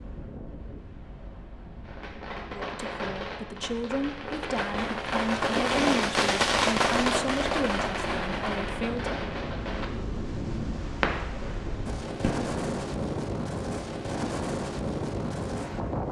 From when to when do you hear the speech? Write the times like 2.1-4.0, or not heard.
2.6-9.2.